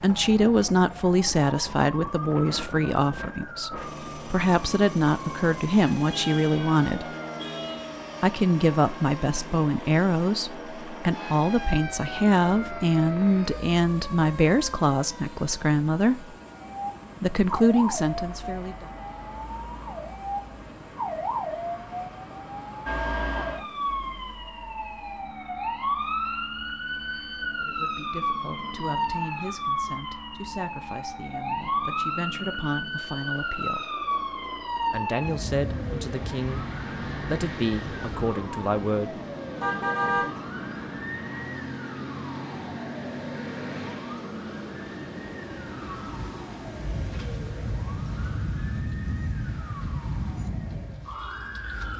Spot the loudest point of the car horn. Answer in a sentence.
The volume of the car horn peaks at 40 seconds.